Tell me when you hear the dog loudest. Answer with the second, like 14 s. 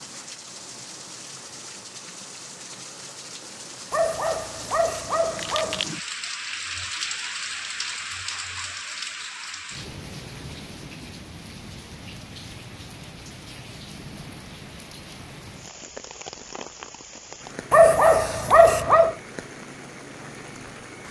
18 s.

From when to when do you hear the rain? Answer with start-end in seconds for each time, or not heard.
0.0-21.0.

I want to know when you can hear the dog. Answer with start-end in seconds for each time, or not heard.
3.9-5.8, 17.7-19.1.